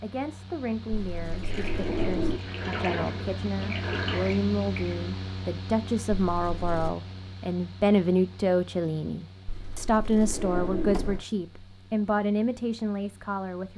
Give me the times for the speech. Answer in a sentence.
You can hear the speech from 0.0 to 13.7 s.